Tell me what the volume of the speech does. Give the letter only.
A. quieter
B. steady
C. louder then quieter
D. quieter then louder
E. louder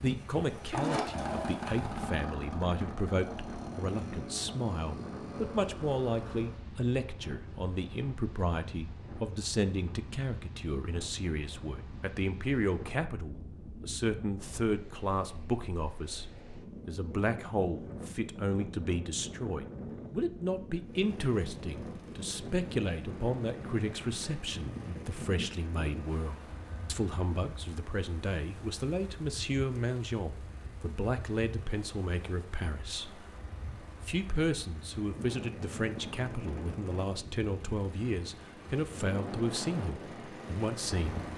B.